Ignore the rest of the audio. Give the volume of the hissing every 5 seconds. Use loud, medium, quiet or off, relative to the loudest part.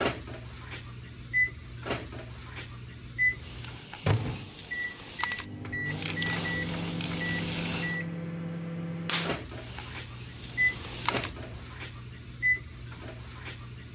medium, loud, loud.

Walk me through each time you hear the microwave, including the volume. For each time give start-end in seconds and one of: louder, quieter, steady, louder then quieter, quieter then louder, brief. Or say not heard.
0.0-13.9 steady.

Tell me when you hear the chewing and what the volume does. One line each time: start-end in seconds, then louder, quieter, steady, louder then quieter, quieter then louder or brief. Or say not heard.
not heard.